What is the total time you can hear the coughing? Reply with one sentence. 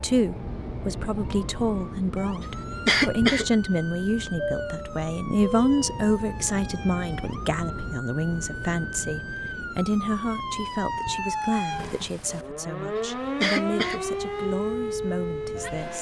You can hear the coughing for 2 seconds altogether.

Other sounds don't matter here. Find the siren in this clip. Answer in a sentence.
The siren can be heard from 0.0 to 15.9 s.